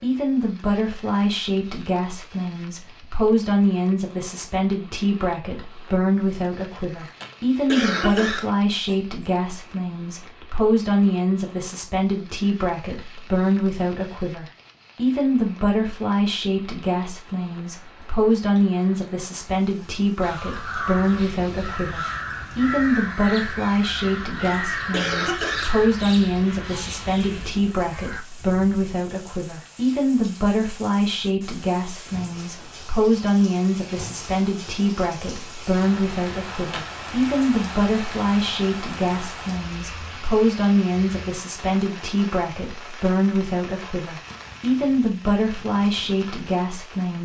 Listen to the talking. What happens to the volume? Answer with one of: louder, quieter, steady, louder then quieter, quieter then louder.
steady.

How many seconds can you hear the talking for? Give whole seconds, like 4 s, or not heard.
47 s.